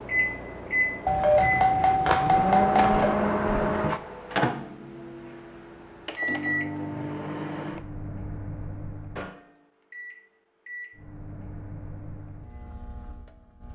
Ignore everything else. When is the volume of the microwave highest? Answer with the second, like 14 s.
3 s.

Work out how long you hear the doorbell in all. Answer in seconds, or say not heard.
2 s.